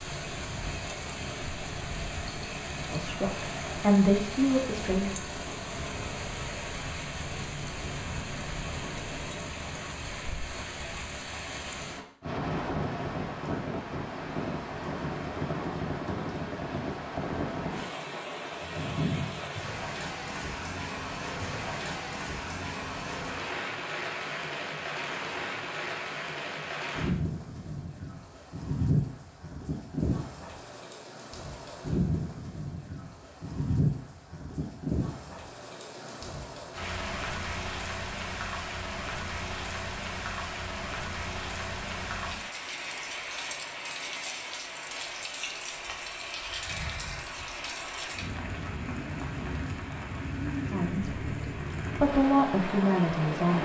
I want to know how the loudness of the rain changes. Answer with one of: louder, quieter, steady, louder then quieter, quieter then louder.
steady.